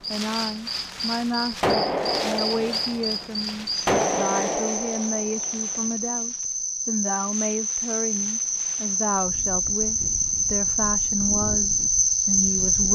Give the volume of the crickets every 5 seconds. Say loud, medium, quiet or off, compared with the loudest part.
medium, medium, loud.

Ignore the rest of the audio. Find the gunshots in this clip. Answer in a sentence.
You can hear the gunshots from 1.6 to 5.8 s.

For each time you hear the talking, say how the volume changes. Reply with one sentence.
You can hear the talking from 0.1 to 12.9 s, at a steady volume.